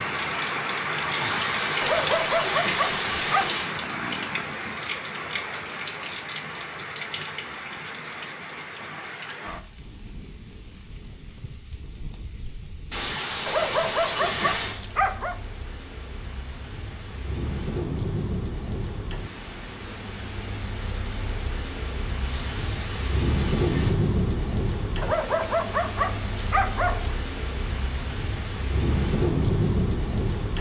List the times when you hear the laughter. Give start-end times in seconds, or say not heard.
1.1-3.8, 12.9-14.8, 22.2-23.9.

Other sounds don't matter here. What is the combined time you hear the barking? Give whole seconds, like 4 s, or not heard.
6 s.